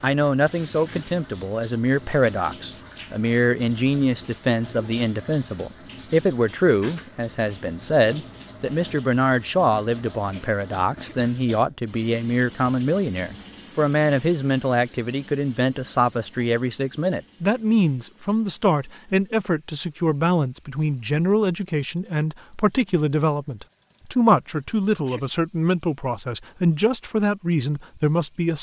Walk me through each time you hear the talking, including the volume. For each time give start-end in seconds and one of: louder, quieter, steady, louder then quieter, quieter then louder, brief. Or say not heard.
0.0-28.5 steady.